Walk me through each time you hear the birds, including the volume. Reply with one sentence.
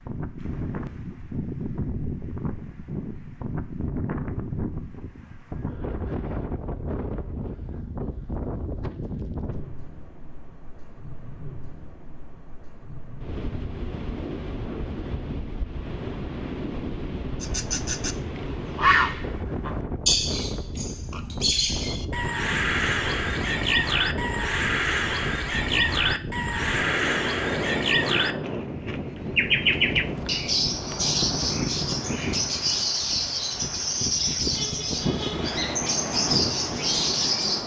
The birds can be heard from 17.4 to 37.6 s, at a steady volume.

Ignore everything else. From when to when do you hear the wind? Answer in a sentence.
The wind can be heard from 0.0 to 37.6 s.